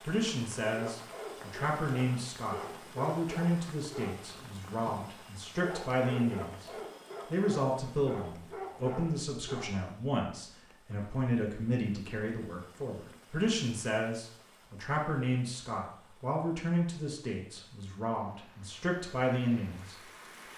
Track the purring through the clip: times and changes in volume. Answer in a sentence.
The purring can't be heard in this clip.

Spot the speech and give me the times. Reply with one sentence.
The speech can be heard from 0.0 to 6.7 s and from 7.3 to 20.1 s.